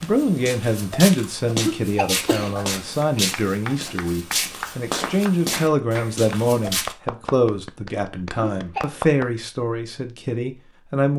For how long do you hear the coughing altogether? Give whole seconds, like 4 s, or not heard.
2 s.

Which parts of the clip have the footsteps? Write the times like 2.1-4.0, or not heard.
0.0-7.0.